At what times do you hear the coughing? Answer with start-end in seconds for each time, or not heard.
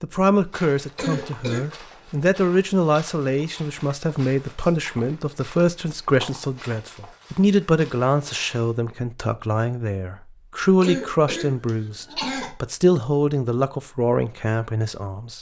0.9-1.6, 10.8-12.5.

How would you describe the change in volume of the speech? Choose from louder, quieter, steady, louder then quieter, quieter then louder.
steady.